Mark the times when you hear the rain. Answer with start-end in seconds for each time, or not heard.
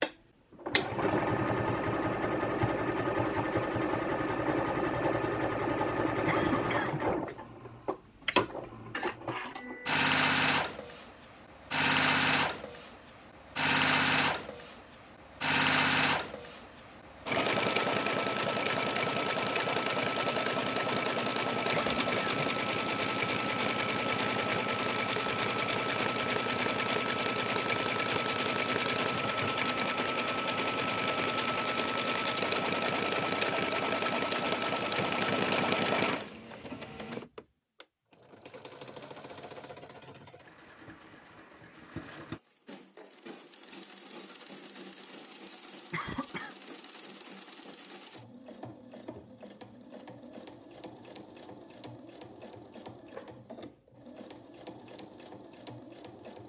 not heard.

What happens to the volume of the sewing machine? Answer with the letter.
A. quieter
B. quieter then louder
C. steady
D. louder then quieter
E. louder
A.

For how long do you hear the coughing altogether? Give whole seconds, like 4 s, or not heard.
2 s.